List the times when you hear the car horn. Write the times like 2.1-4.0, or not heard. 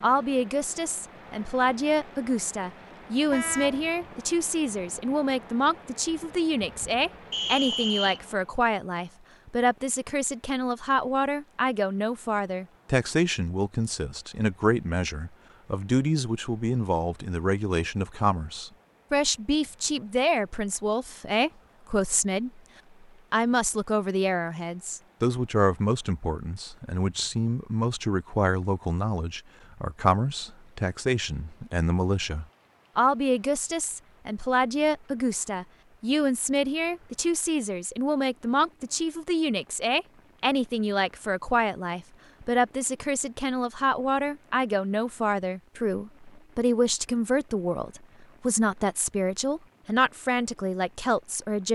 3.3-4.0.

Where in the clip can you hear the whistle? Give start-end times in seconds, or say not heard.
7.3-8.2.